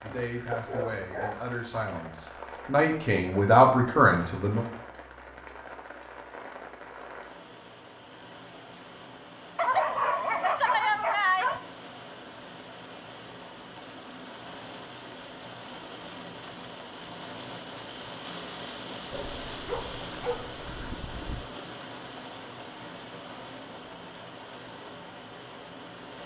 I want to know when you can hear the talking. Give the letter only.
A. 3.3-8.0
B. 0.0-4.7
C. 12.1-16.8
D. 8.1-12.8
B.